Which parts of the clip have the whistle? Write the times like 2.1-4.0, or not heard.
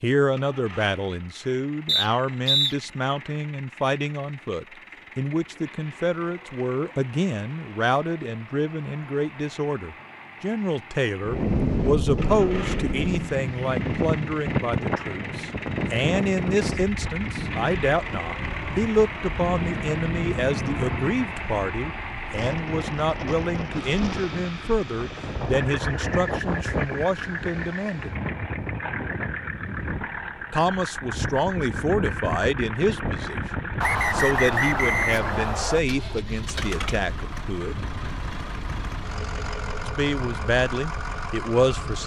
1.9-2.8, 33.8-35.8.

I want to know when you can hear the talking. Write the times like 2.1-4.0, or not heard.
0.0-28.1, 30.5-37.8, 39.8-42.0.